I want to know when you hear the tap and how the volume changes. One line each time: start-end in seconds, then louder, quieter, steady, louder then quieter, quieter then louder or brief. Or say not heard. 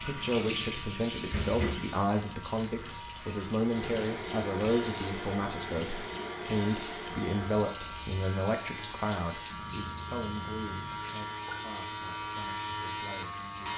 0.0-13.7 quieter.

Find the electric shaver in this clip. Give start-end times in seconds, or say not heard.
0.0-13.7.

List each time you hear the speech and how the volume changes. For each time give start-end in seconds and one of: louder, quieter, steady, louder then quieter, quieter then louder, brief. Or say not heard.
0.0-13.7 quieter.